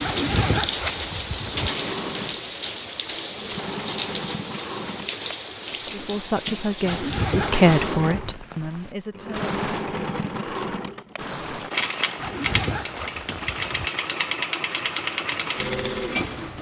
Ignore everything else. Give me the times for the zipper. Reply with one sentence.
You can hear the zipper from 0.0 to 1.7 s, from 6.8 to 8.3 s and from 12.2 to 13.8 s.